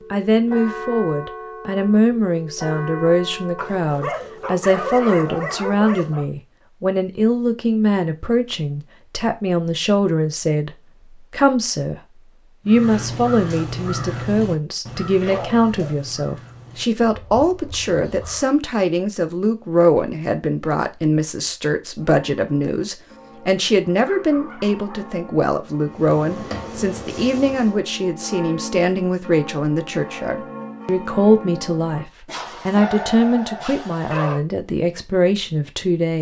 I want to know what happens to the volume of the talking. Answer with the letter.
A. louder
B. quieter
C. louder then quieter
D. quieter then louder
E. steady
E.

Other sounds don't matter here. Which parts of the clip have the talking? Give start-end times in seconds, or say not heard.
0.1-36.1.